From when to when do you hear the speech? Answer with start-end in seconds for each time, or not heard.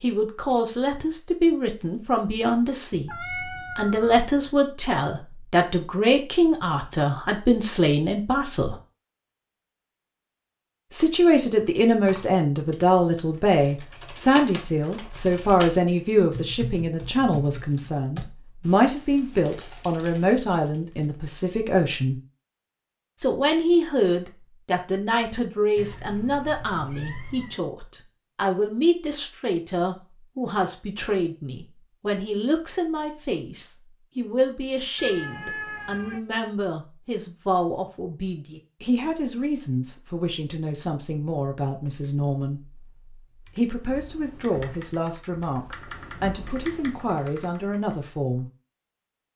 0.0-3.1, 3.8-8.8, 10.9-22.2, 23.2-42.9, 43.5-48.5.